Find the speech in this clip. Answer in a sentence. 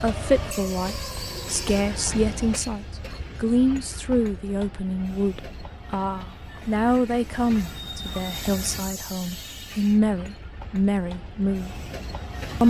You can hear the speech from 0.0 to 11.8 s.